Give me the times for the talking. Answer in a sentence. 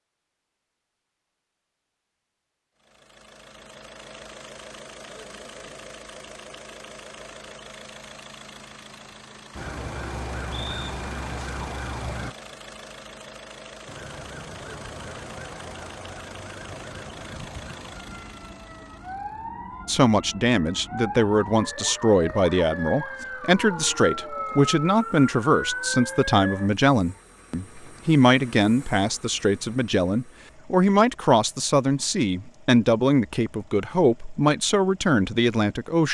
You can hear the talking from 19.9 to 36.0 s.